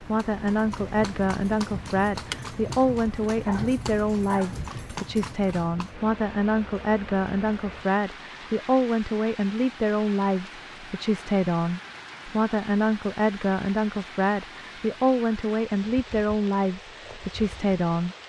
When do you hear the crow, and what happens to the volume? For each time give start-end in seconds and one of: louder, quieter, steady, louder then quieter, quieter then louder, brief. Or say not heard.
not heard.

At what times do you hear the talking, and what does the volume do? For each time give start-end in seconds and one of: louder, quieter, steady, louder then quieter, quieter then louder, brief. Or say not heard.
0.0-18.1 steady.